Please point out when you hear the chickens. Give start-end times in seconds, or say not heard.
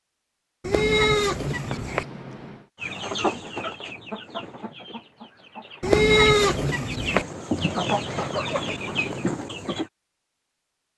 2.8-9.9.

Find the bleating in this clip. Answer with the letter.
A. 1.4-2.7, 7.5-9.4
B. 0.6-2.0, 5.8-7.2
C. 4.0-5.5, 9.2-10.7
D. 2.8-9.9
B.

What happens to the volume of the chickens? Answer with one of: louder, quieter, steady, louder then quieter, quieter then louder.
quieter then louder.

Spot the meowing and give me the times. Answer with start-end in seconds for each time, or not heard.
1.4-2.7, 7.5-9.4.